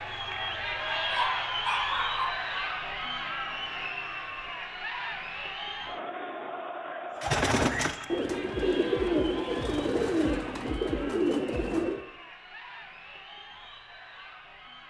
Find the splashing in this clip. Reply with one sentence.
The splashing can't be heard in this clip.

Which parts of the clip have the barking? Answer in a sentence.
You can hear the barking from 0.9 to 2.4 s.